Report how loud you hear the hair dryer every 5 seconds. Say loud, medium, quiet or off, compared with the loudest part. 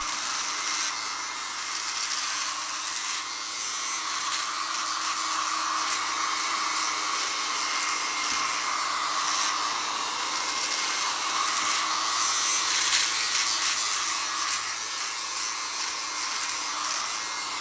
medium, loud, loud, medium.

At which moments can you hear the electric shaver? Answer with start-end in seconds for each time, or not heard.
0.0-17.5.